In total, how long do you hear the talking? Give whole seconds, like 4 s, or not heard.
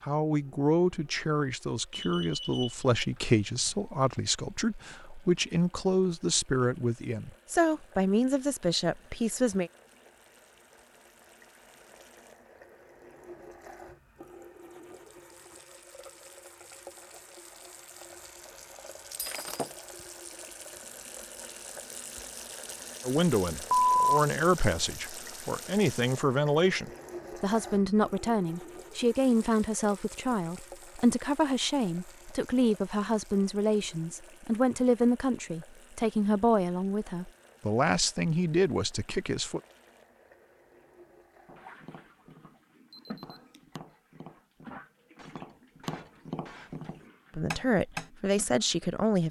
28 s.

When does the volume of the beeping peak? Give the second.
24 s.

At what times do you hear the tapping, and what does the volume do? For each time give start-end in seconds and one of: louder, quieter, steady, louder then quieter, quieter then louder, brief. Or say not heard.
41.5-48.1 louder.